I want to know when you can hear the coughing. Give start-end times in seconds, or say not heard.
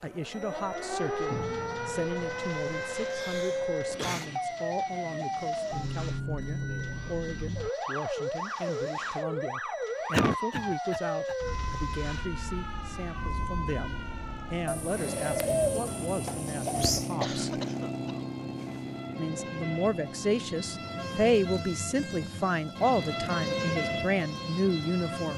3.1-4.3, 10.1-11.3, 17.2-19.0.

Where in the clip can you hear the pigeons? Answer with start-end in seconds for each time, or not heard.
14.7-17.1.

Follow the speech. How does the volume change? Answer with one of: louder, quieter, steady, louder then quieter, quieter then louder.
louder.